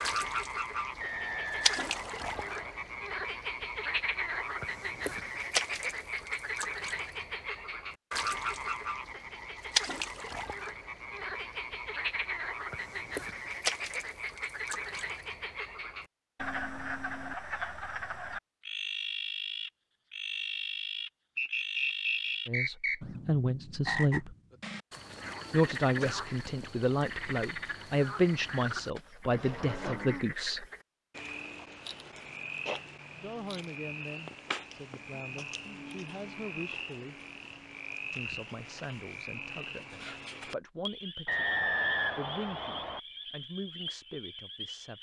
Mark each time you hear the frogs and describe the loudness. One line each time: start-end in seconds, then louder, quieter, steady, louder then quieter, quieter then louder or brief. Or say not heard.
0.0-44.9 quieter.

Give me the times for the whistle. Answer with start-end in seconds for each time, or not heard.
1.0-2.8, 21.4-23.0, 41.2-43.0.